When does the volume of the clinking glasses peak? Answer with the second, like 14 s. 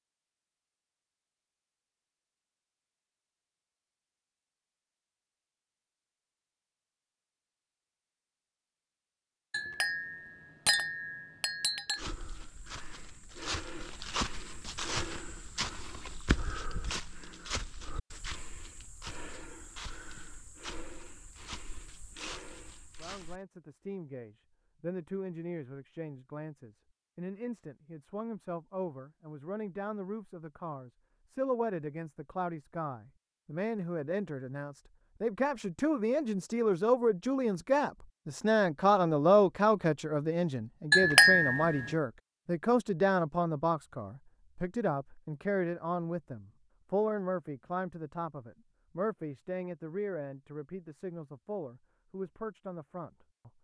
41 s.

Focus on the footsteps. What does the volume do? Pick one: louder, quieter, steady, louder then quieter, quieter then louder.
quieter.